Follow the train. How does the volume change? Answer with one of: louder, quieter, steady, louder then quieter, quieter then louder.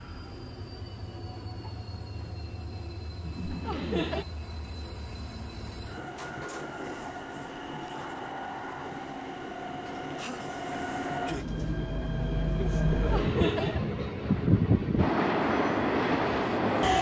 louder.